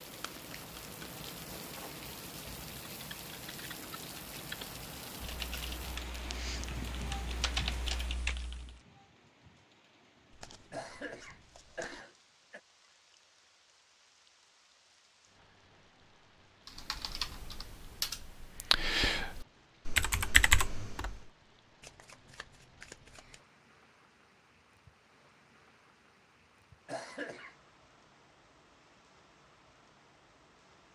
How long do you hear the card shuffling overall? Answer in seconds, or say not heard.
5 s.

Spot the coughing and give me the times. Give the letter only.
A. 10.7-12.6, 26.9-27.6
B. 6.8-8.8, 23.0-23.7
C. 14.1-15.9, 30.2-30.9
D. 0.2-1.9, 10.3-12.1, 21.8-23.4
A.